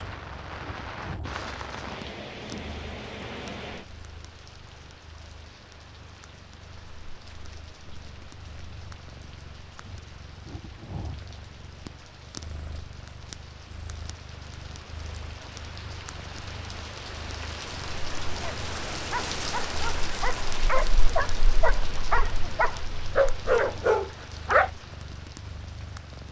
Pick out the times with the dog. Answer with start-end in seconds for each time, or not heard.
18.4-24.7.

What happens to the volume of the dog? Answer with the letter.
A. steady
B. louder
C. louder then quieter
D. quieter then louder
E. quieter
B.